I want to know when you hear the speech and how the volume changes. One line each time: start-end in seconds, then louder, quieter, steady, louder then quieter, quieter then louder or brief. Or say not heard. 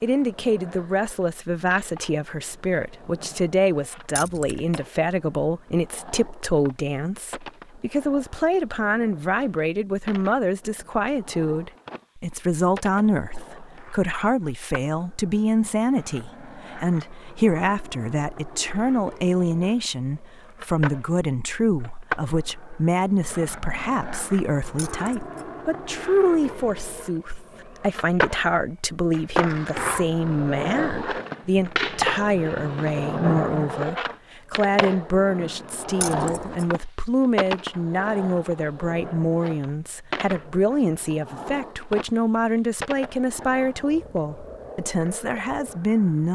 0.0-46.3 steady.